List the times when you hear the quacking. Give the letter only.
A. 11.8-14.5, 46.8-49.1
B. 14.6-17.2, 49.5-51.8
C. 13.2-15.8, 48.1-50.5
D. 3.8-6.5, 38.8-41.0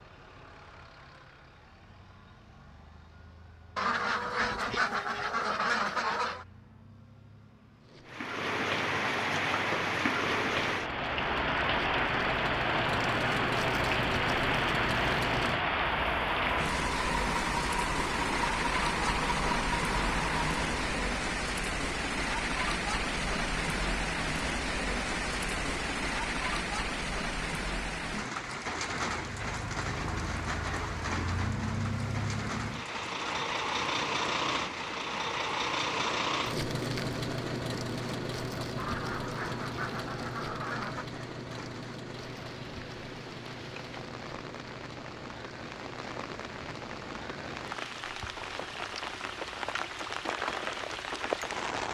D.